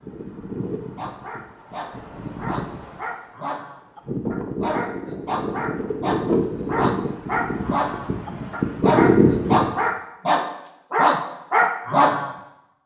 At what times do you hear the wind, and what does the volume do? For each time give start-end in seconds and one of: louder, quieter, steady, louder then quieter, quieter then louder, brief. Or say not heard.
0.0-9.7 louder.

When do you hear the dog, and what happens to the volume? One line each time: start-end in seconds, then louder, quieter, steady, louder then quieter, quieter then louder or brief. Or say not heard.
0.9-12.3 louder.